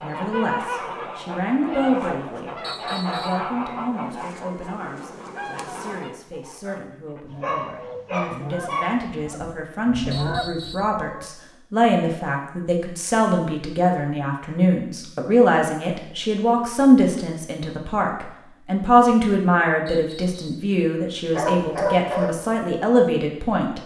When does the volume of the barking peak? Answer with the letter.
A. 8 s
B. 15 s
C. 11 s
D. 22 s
D.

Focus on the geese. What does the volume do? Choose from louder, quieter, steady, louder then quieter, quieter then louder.
quieter then louder.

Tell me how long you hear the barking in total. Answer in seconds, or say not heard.
3 s.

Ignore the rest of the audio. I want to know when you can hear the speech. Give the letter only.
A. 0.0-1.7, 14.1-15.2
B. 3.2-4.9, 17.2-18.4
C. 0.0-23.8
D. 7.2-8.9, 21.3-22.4
C.